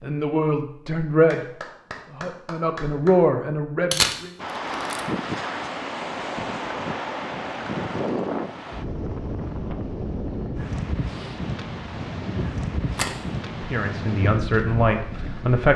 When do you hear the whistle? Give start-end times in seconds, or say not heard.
not heard.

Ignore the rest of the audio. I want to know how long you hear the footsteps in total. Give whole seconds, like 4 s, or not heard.
not heard.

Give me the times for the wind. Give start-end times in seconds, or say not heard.
4.3-15.7.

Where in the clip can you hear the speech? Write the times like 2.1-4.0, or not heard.
0.0-4.3, 13.6-15.7.